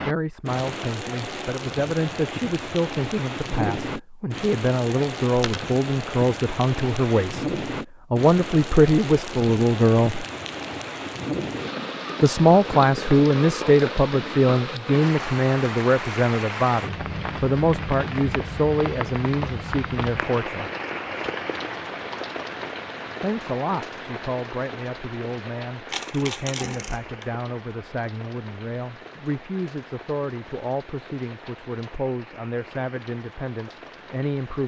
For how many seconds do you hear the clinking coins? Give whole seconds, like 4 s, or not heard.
2 s.